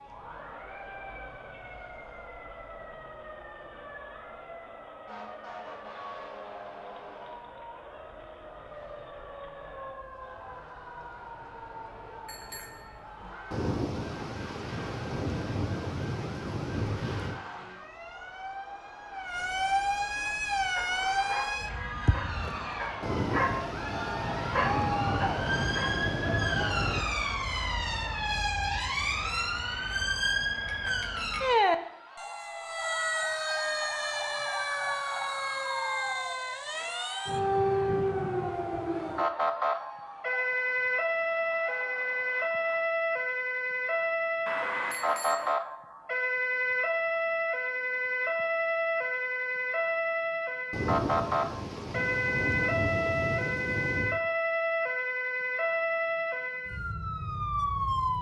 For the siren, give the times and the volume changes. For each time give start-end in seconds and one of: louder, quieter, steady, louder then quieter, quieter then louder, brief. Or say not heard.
0.0-58.1 louder.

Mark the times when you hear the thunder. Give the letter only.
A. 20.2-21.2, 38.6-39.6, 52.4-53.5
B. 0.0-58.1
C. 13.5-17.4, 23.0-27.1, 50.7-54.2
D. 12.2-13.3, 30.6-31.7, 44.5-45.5
C.